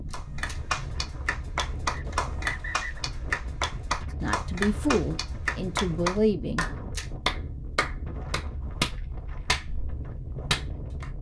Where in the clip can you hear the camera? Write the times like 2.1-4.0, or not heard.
0.1-0.6, 6.5-7.1.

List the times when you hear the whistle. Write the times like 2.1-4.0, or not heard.
1.9-3.0.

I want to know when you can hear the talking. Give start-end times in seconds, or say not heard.
4.2-6.7.